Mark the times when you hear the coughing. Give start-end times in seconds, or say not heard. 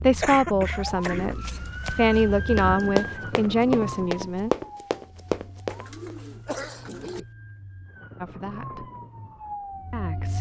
0.2-1.4, 6.5-7.2.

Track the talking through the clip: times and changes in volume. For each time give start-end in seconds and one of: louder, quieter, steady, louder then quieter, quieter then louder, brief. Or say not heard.
0.0-4.5 quieter then louder
8.2-8.8 brief
9.9-10.3 brief.